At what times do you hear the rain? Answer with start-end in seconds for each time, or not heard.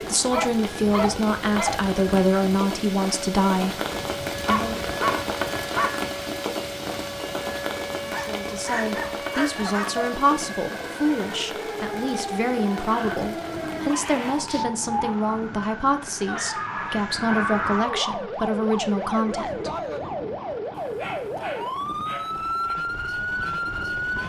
0.0-14.4.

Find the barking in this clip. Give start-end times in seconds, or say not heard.
0.3-1.8, 4.5-6.0, 8.1-10.2, 12.8-14.7, 16.2-18.3, 20.8-22.8.